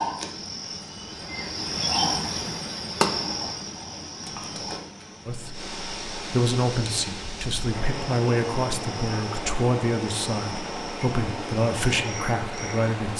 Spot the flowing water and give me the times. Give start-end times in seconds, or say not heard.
5.5-13.1.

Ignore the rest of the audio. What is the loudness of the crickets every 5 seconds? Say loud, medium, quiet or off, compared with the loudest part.
loud, medium, medium.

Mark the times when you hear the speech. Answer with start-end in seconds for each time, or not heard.
5.2-13.1.